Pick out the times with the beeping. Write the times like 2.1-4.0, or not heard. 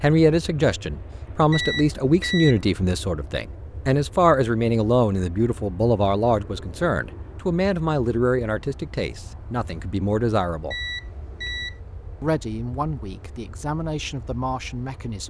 1.5-2.6, 10.7-11.8.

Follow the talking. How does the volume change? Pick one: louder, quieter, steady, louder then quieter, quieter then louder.
quieter.